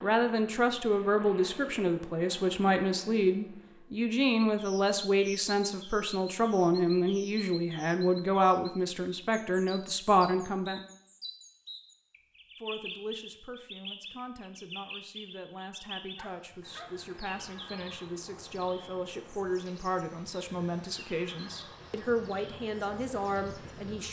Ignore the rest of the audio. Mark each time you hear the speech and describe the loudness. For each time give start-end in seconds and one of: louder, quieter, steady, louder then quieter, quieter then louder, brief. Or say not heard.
0.0-10.8 steady
12.6-24.0 louder.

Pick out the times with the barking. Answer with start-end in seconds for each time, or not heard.
16.1-17.3.